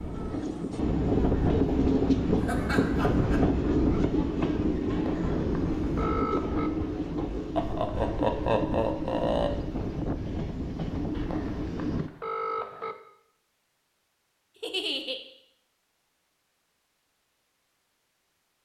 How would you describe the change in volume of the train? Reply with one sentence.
The volume of the train goes down.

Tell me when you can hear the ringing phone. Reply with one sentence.
You can hear the ringing phone from 4.9 to 6.7 s and from 11.1 to 12.9 s.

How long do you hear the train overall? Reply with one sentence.
You can hear the train for 12 seconds altogether.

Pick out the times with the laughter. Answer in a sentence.
You can hear the laughter from 2.4 to 3.5 s, from 7.5 to 9.5 s and from 14.6 to 15.2 s.